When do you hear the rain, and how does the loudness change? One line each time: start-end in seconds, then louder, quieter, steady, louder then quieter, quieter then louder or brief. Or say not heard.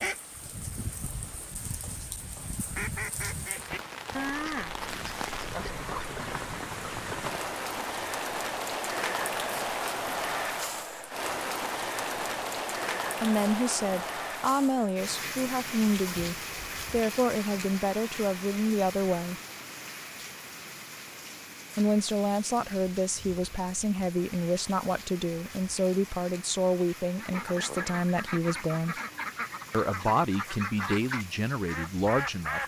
0.0-32.6 louder then quieter.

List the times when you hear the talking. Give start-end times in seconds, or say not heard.
13.2-19.4, 21.8-28.9, 29.7-32.6.